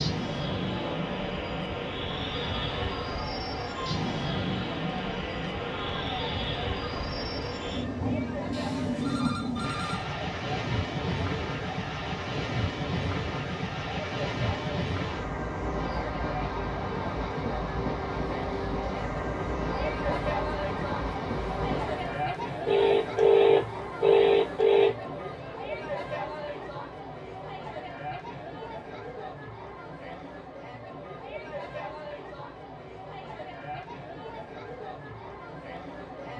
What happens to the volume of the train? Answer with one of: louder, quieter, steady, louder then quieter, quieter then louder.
steady.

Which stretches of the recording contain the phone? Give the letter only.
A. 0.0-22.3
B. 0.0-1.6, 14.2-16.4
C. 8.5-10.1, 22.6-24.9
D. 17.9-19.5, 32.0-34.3
C.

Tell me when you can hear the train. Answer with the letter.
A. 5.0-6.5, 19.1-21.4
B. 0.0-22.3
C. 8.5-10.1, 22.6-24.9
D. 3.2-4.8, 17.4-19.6
B.